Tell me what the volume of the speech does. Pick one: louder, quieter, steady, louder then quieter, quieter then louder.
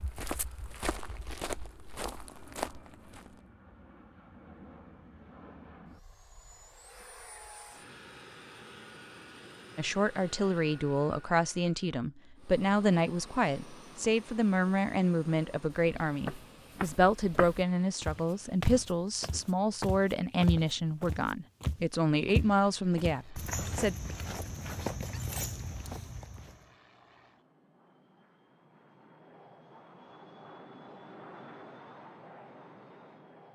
steady.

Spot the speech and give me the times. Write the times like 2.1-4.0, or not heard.
9.8-23.9.